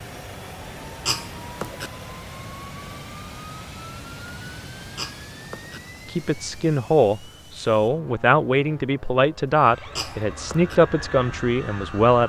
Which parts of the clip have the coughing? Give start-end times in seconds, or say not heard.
1.1-1.9, 5.0-5.8, 9.9-10.8.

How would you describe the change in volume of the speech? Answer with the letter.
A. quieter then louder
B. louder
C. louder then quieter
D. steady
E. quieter
D.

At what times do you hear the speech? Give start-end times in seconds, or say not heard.
6.0-12.2.